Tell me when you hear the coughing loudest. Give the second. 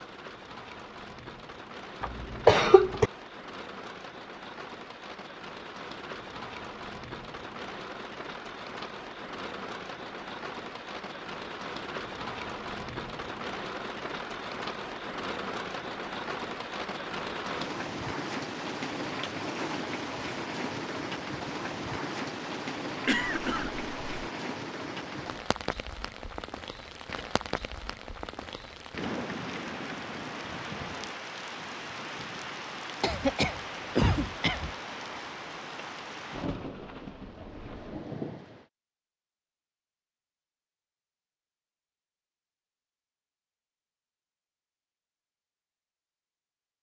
3 s.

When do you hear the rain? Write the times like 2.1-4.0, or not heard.
0.0-38.6.